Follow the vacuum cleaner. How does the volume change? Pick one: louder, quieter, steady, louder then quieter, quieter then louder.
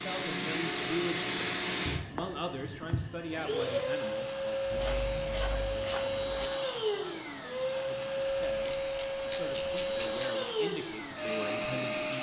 steady.